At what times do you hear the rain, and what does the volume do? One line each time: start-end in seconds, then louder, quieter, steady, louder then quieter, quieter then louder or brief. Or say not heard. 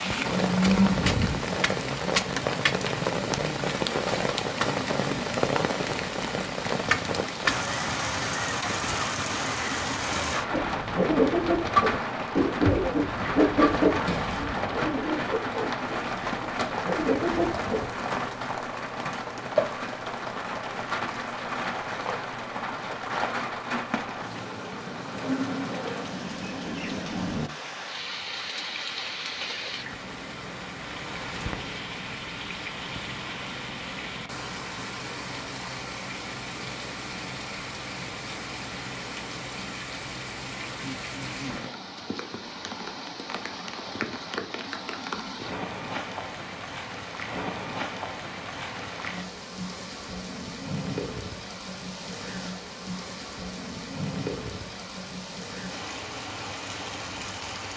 0.0-57.7 quieter.